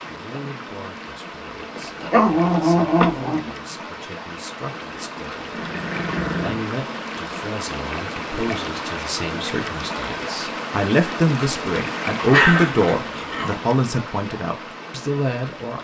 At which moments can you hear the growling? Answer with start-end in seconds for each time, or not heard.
1.8-3.5, 5.5-6.7, 12.2-13.6.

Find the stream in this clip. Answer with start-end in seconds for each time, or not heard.
0.0-15.7.